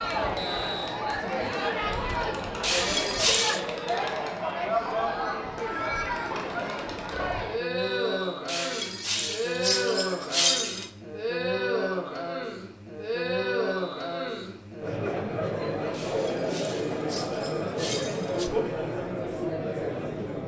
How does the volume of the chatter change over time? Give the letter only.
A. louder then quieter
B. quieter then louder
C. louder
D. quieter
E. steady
E.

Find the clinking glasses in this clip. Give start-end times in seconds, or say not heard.
2.6-3.6, 8.4-10.9, 15.9-18.5.